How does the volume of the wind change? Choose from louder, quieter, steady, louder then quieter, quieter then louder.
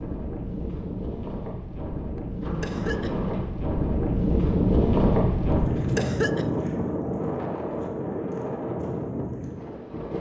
louder then quieter.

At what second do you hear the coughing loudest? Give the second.
6 s.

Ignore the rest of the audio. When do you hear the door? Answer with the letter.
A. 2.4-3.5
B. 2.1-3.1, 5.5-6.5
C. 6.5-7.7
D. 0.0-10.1
A.